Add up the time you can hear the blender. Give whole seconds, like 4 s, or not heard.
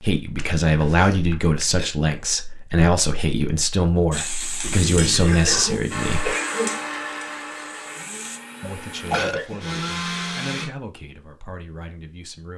5 s.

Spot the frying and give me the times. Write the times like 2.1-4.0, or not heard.
4.1-8.4.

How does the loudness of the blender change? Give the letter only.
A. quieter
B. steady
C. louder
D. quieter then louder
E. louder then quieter
D.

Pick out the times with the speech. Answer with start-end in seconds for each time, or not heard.
0.0-6.3, 8.6-12.5.